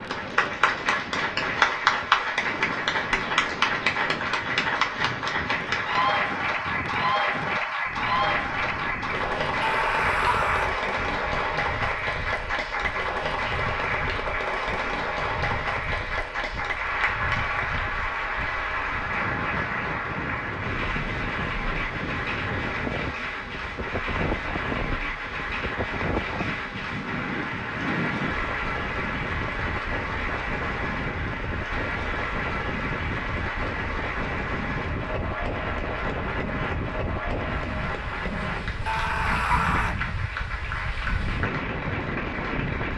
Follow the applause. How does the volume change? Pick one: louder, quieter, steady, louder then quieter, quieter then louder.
quieter.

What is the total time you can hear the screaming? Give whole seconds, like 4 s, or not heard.
2 s.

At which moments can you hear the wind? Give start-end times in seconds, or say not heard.
0.0-42.9.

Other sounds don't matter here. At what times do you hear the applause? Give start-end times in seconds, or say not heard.
0.0-42.9.